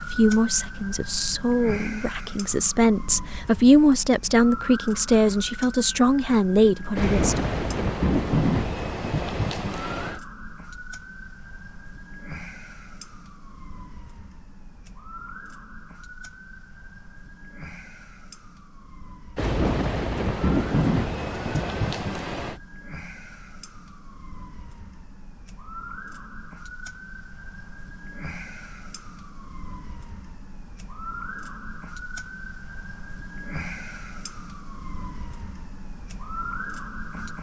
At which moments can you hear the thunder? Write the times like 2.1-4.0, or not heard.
7.0-10.2, 19.4-22.6.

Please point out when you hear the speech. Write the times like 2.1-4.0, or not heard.
0.1-7.5.